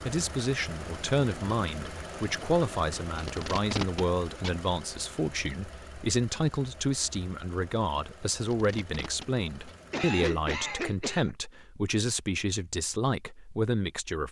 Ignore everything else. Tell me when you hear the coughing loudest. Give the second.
10 s.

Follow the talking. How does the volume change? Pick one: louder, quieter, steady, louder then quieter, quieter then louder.
steady.